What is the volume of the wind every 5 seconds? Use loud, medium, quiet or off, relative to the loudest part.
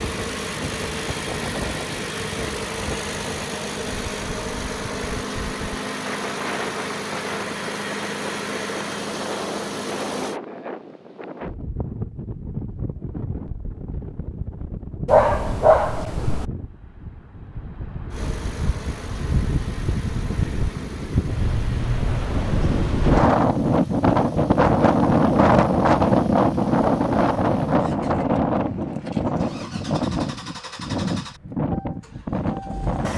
quiet, quiet, quiet, quiet, loud, loud, medium.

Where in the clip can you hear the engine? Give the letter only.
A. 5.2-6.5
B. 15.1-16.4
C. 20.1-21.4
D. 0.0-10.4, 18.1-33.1
D.